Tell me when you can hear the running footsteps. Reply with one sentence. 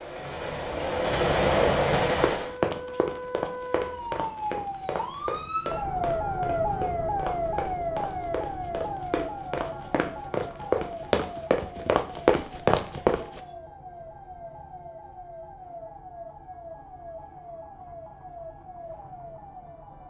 You can hear the running footsteps from 2.1 to 13.4 s.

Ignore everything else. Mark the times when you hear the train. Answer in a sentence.
The train can be heard from 0.0 to 2.5 s.